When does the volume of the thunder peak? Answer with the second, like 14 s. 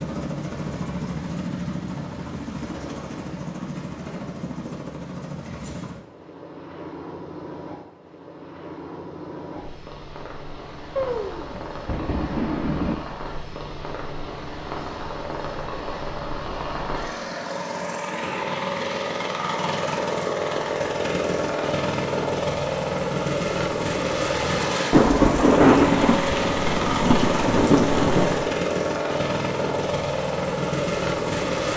26 s.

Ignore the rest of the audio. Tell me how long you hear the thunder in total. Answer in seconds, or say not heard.
6 s.